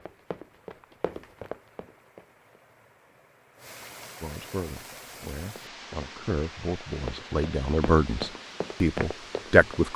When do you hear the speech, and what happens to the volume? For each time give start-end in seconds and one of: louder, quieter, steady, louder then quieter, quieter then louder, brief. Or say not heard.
4.2-9.9 louder.